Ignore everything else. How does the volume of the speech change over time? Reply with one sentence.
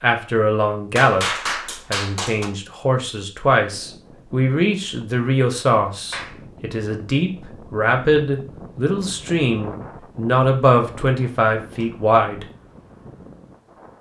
The loudness of the speech stays about the same.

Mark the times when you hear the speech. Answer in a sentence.
You can hear the speech from 0.0 to 12.4 s.